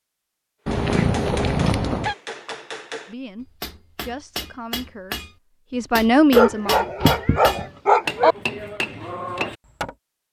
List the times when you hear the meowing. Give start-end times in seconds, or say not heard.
0.7-2.1, 6.4-7.7.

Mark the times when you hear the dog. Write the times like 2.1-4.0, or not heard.
6.3-8.3.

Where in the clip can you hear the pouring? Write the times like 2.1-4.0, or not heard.
not heard.